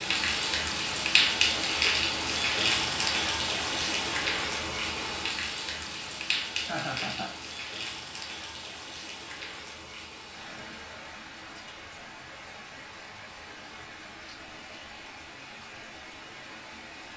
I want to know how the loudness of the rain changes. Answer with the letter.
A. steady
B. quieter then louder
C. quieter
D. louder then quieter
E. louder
C.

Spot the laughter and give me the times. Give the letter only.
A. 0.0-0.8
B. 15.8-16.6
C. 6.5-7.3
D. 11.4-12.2
C.